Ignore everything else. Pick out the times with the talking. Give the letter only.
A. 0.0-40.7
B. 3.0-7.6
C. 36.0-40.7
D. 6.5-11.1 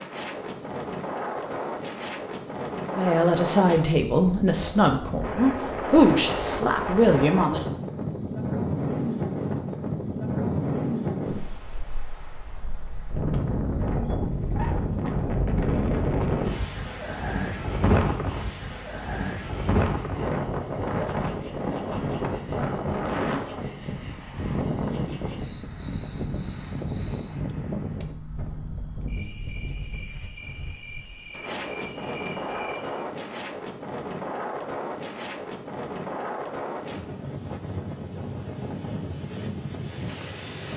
B.